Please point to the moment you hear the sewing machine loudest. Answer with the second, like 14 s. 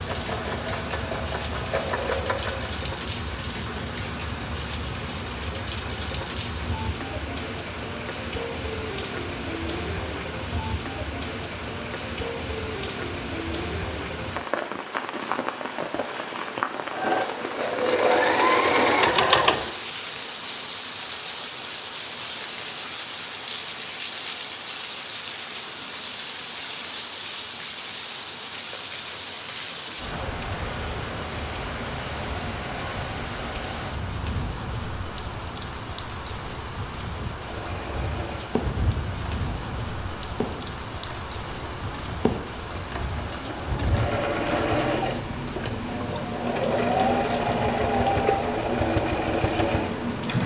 19 s.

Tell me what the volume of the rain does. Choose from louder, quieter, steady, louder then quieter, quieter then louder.
steady.